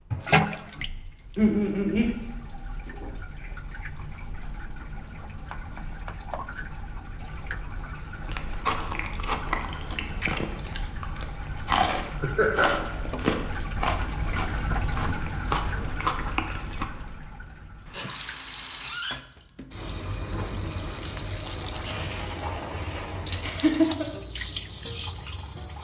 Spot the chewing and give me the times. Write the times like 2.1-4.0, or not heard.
8.2-16.9.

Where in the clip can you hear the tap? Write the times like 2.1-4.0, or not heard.
0.0-25.7.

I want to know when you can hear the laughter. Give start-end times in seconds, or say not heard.
1.4-2.1, 12.2-12.8, 23.4-24.1.